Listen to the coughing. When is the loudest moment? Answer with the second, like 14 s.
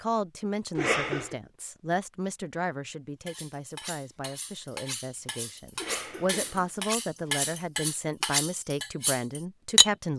1 s.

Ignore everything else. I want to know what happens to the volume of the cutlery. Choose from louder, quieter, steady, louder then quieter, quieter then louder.
louder.